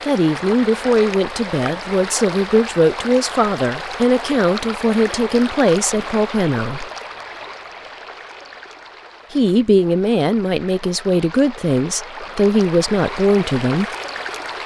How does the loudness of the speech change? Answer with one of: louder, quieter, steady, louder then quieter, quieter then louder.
steady.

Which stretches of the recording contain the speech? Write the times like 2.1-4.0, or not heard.
0.0-6.9, 9.3-13.8.